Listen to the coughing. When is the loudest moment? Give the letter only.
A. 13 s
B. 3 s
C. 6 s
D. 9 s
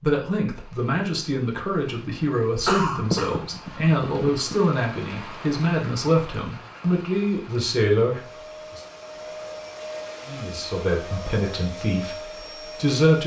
B.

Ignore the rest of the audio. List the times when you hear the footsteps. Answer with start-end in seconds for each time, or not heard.
not heard.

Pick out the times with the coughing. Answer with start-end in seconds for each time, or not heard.
2.6-4.5.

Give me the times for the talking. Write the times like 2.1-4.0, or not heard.
0.0-8.8, 10.2-13.2.